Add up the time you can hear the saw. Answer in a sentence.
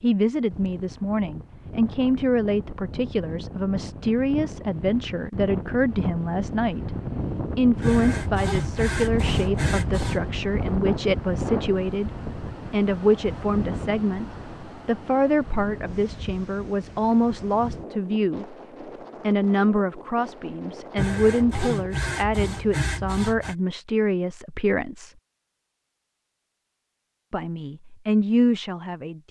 You can hear the saw for 5 seconds altogether.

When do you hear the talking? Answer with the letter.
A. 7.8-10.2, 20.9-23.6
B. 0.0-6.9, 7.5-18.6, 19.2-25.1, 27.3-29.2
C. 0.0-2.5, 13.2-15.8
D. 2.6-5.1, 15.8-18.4
B.